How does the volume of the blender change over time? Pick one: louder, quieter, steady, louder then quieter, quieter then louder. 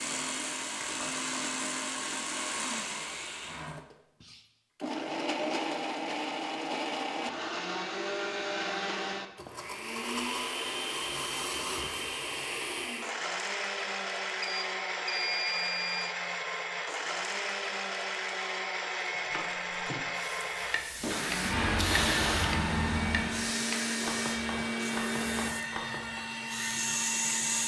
steady.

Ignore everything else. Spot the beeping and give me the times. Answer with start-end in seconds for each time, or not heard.
14.4-16.1.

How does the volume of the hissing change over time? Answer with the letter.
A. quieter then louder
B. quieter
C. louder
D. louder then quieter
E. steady
A.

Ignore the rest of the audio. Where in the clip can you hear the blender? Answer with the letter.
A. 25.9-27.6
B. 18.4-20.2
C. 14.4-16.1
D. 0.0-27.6
D.